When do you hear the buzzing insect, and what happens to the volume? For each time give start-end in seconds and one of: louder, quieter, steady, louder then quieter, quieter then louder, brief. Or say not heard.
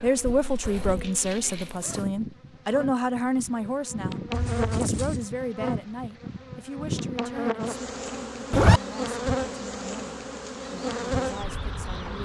0.0-12.2 louder.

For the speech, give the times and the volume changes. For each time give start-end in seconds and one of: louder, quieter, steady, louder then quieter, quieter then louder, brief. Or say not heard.
0.0-12.2 quieter.